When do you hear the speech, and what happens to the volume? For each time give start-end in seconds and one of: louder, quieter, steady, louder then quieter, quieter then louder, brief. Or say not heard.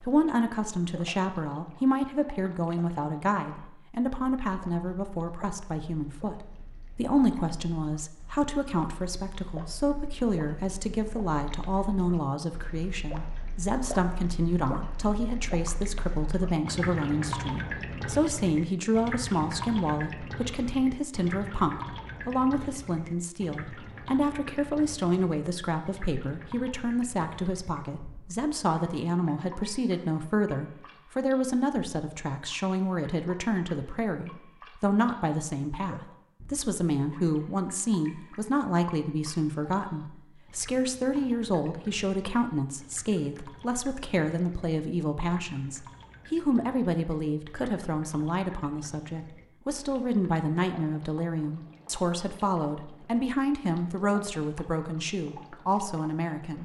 0.0-56.5 steady.